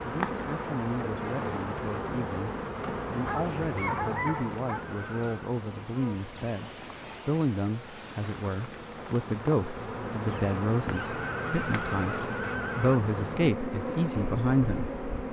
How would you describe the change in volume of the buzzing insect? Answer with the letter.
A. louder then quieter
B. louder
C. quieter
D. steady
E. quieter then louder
E.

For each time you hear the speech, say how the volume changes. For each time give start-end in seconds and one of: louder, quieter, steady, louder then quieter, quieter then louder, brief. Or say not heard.
0.0-14.9 louder.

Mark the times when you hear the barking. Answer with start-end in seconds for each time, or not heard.
3.2-4.8.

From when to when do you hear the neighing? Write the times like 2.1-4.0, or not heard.
4.8-5.5, 11.0-13.0.